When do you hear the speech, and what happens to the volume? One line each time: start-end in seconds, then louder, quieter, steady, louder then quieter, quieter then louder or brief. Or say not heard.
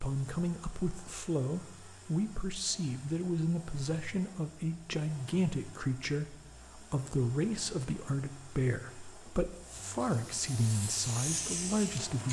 0.0-12.2 steady.